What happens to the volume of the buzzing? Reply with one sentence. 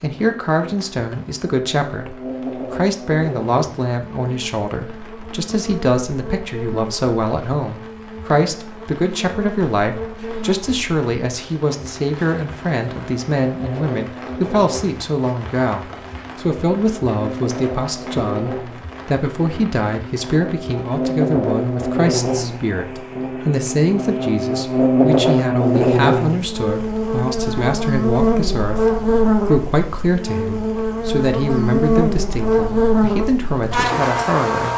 The loudness of the buzzing goes up.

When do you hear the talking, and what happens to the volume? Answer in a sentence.
You can hear the talking from 0.0 to 34.7 s, at a steady volume.